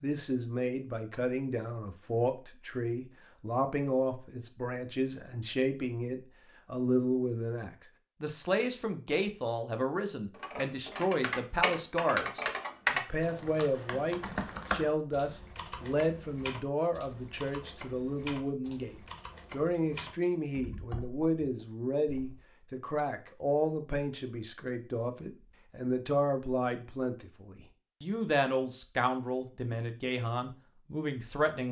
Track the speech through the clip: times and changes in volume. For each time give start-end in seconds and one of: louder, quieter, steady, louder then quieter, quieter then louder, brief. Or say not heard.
0.0-31.6 steady.